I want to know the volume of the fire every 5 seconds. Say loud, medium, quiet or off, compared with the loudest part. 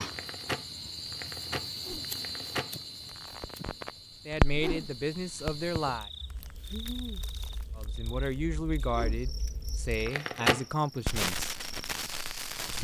loud, quiet, loud.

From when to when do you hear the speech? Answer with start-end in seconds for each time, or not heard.
4.2-6.1, 7.8-11.5.